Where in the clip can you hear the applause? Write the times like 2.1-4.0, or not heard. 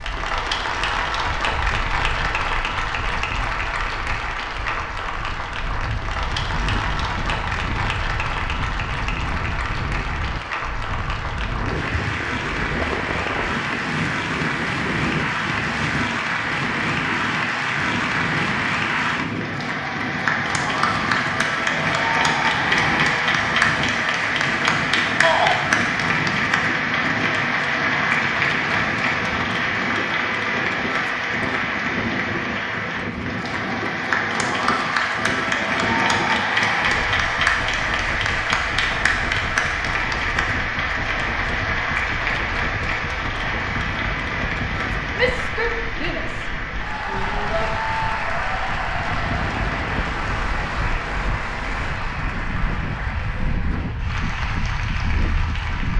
0.0-55.9.